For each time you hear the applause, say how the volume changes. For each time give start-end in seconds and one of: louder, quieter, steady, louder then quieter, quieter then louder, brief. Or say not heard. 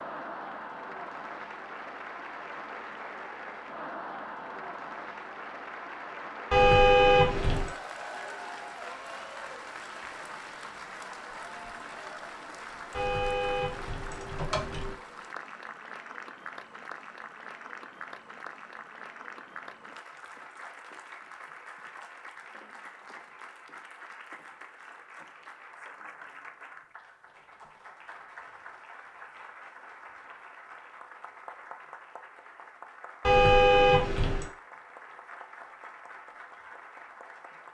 0.0-37.6 quieter.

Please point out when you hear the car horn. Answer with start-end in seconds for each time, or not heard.
6.5-7.7, 12.9-14.9, 33.2-34.5.